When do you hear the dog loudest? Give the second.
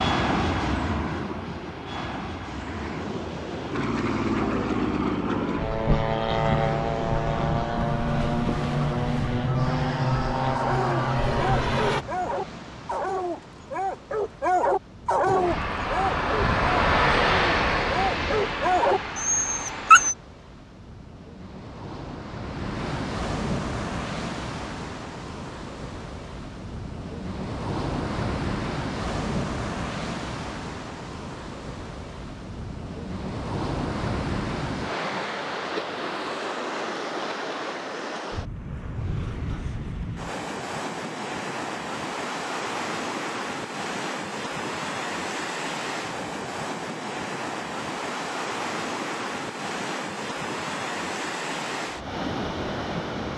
20 s.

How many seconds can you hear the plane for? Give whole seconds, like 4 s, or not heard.
17 s.